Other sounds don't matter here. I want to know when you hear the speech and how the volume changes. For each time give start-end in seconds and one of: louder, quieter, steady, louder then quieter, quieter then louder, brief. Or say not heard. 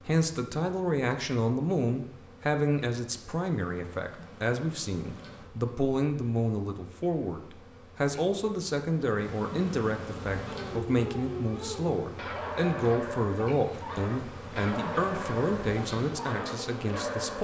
0.1-17.3 steady.